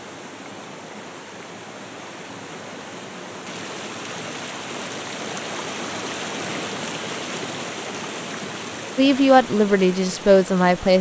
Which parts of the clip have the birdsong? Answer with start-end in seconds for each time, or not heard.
not heard.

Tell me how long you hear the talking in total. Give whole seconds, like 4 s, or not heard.
2 s.